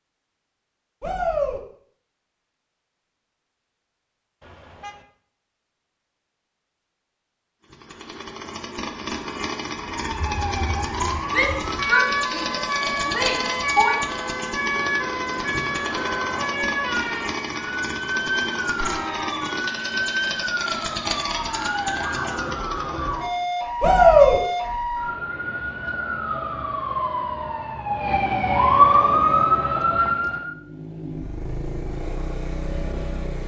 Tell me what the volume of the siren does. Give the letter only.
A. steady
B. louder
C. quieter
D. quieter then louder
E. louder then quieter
B.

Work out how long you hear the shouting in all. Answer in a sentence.
You can hear the shouting for 4 seconds altogether.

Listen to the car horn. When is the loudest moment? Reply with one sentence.
The loudest moment of the car horn is at 19 seconds.